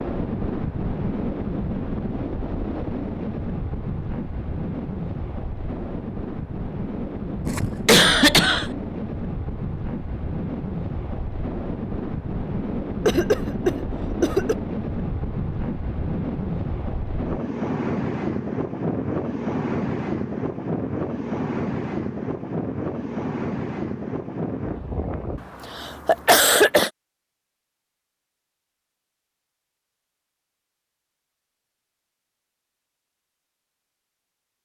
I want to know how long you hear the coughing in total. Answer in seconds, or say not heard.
4 s.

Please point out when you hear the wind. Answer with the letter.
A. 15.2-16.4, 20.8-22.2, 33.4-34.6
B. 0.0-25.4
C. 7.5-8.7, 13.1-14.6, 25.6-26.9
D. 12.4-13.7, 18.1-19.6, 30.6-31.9
B.